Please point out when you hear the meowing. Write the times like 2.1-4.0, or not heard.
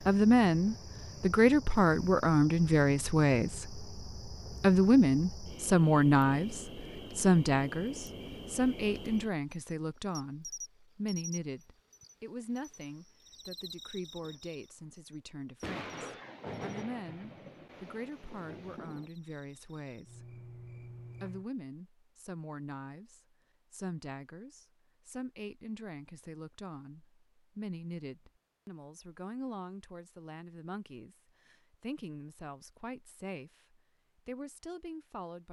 not heard.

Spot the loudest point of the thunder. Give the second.
17 s.